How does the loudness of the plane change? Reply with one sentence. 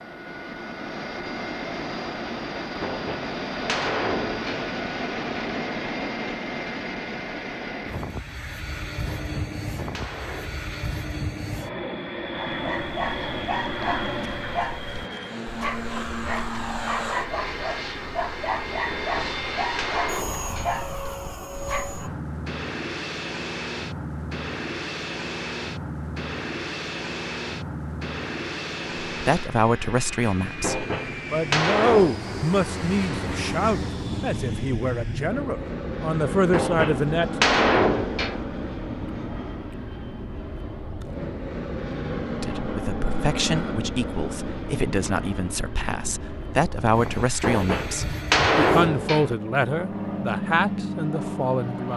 The loudness of the plane stays about the same.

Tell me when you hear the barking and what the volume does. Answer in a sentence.
You can hear the barking from 12.4 to 22.2 s, at a steady volume.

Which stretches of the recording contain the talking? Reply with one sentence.
The talking can be heard from 29.1 to 37.3 s and from 42.4 to 51.9 s.